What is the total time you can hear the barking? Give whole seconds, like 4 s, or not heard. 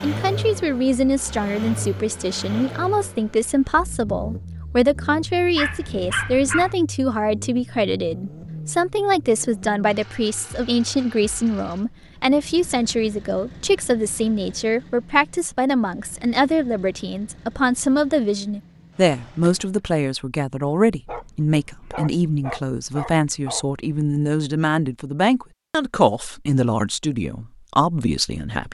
4 s.